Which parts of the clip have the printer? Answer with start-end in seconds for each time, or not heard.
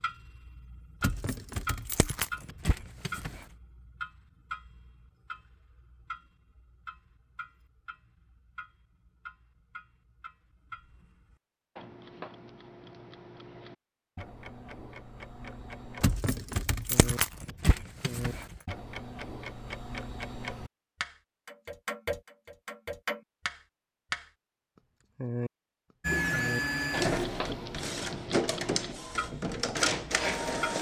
26.1-30.7.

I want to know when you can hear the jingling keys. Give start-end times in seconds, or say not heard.
1.0-3.5, 16.0-18.6.